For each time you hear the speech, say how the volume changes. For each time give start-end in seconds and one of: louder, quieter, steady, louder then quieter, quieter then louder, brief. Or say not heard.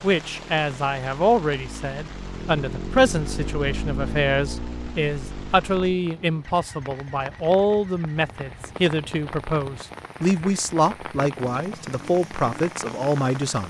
0.0-13.6 steady.